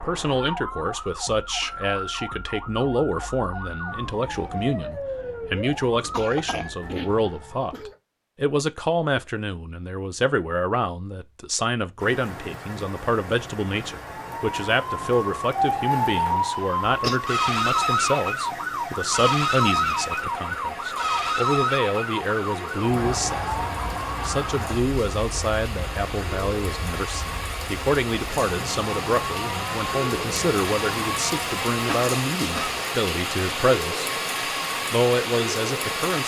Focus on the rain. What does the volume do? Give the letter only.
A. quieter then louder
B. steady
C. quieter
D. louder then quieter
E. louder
E.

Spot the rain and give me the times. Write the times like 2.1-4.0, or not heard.
11.9-36.2.